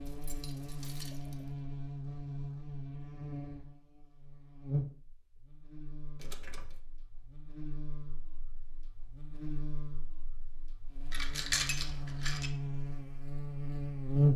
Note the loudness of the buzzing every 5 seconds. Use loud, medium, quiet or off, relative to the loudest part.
medium, quiet, loud.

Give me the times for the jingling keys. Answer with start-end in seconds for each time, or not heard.
0.1-1.5, 6.2-6.8, 11.1-12.5.